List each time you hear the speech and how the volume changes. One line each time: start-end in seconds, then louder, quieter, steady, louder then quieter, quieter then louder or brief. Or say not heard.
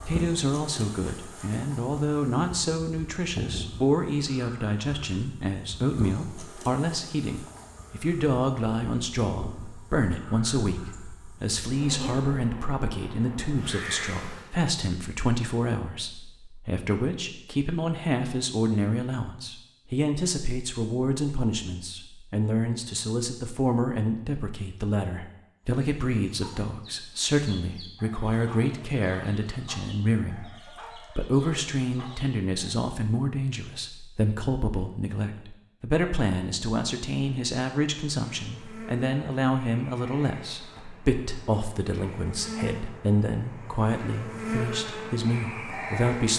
0.1-46.3 steady.